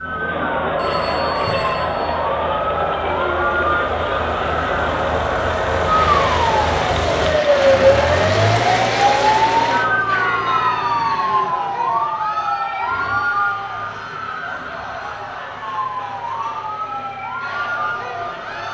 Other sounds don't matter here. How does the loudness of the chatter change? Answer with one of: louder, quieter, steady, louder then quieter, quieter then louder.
quieter.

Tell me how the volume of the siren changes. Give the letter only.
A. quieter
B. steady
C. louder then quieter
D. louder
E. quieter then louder
C.